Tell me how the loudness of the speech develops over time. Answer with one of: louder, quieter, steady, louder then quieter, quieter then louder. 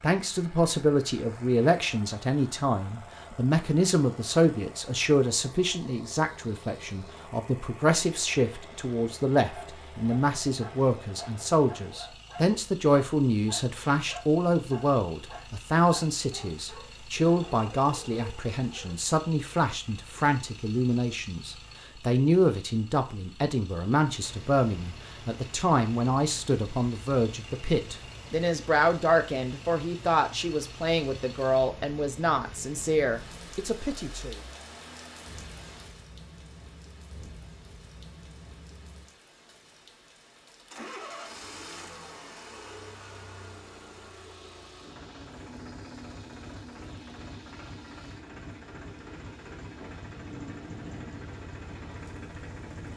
steady.